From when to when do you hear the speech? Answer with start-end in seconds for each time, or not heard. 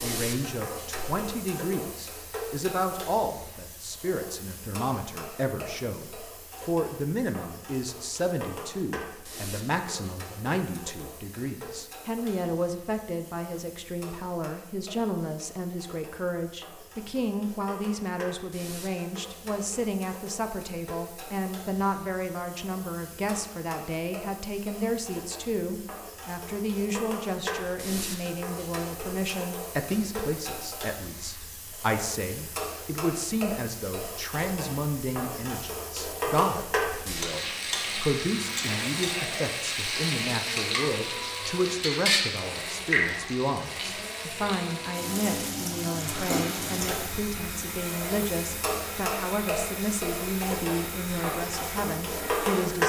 0.0-52.8.